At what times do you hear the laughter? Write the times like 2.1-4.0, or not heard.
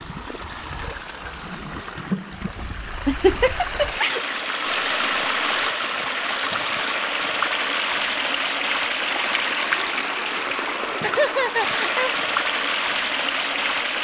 3.0-4.2, 11.0-12.1.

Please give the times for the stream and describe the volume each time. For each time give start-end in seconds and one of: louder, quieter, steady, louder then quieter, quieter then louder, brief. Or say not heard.
0.0-13.9 louder.